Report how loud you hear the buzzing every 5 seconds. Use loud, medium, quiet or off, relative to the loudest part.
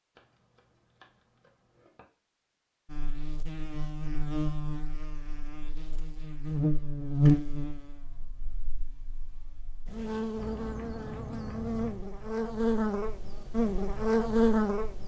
medium, loud, loud.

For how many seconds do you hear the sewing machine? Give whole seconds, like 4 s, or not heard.
not heard.